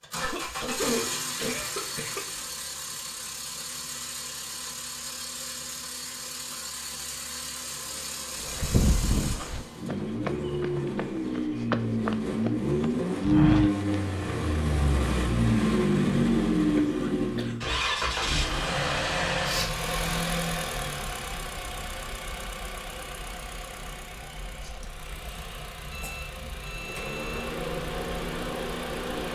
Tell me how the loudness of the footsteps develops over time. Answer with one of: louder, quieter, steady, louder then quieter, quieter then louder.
quieter then louder.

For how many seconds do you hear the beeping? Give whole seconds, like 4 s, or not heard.
2 s.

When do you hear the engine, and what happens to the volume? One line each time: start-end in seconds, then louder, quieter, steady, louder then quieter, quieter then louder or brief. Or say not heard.
0.0-29.3 louder then quieter.